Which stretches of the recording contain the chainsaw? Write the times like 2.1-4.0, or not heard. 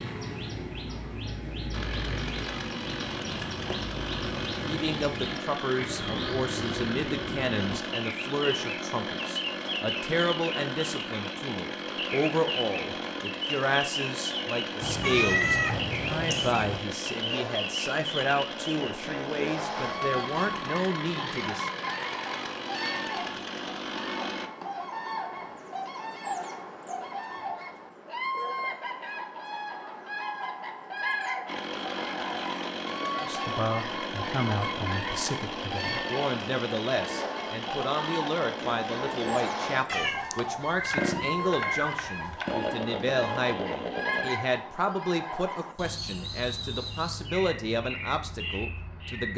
1.7-24.5, 31.4-44.3.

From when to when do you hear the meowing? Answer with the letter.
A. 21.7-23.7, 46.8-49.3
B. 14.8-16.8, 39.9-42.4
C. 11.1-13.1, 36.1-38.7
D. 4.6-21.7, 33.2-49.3
B.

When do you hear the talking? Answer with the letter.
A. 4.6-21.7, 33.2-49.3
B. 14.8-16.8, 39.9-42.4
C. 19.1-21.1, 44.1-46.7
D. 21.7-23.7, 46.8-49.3
A.